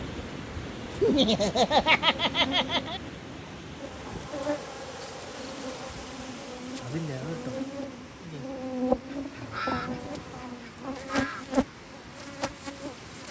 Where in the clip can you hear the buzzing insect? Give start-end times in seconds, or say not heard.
0.0-13.2.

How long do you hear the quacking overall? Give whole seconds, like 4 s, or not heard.
2 s.